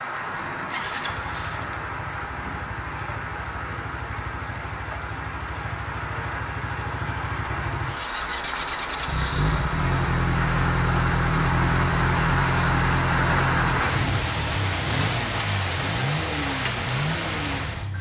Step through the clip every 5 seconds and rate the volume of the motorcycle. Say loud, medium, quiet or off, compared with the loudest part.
quiet, medium, loud, medium.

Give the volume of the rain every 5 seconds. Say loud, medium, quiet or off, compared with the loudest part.
medium, medium, loud, loud.